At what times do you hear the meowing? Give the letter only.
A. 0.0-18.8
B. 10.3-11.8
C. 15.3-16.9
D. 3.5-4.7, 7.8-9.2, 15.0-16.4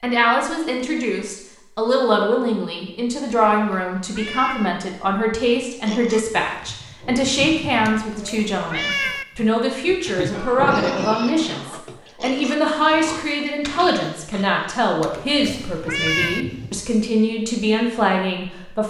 D.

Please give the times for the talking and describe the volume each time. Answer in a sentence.
You can hear the talking from 0.0 to 18.8 s, at a steady volume.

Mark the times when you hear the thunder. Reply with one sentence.
The thunder can be heard from 10.3 to 11.8 s.